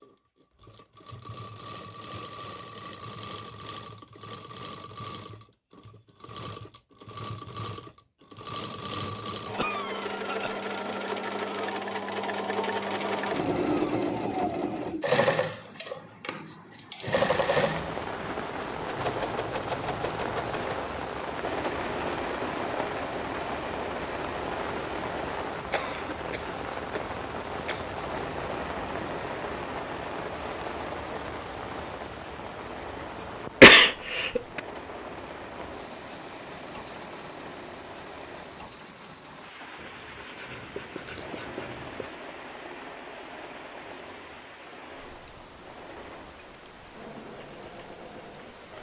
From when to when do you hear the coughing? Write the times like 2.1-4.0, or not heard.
9.6-10.6, 25.5-27.9, 33.6-34.6.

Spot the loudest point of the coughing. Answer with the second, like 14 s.
34 s.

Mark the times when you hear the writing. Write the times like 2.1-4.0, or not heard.
39.8-42.1.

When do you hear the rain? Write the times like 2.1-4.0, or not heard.
17.2-48.7.